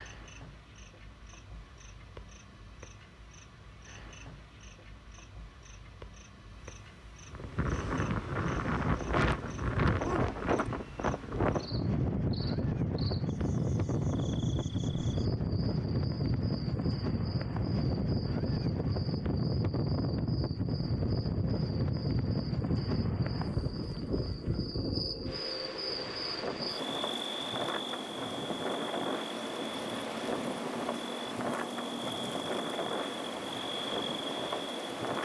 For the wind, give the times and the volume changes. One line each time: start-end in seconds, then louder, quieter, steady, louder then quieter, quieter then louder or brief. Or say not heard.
7.2-35.1 quieter.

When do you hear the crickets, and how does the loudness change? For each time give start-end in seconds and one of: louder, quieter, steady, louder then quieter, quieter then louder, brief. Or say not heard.
0.0-35.1 louder.